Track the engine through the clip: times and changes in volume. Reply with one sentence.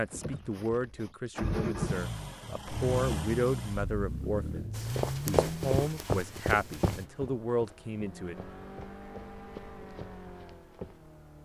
You can hear the engine from 0.0 to 11.4 s, getting quieter.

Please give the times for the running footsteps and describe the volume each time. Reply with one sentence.
The running footsteps can be heard from 4.8 to 11.0 s, getting quieter.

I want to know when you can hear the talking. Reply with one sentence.
You can hear the talking from 0.0 to 8.3 s.